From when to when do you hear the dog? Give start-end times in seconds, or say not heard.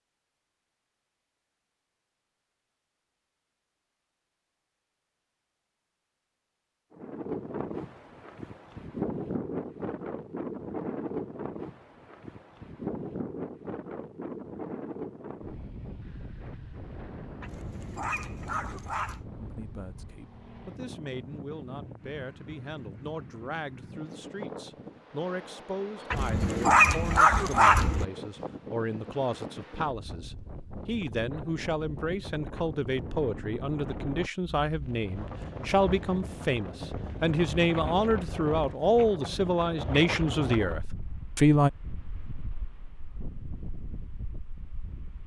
17.4-19.2, 26.1-28.1.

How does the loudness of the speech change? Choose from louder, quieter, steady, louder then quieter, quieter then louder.
louder.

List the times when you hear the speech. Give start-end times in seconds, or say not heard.
19.4-41.7.